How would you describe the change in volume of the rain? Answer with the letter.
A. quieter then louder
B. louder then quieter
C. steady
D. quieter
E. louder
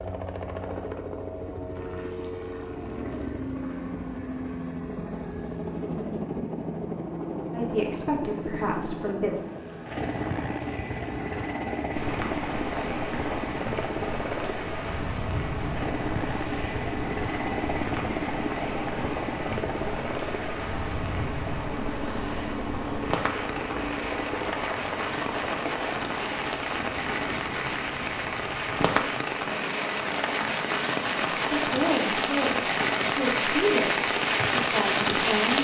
E.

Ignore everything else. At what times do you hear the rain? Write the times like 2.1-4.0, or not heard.
11.9-35.5.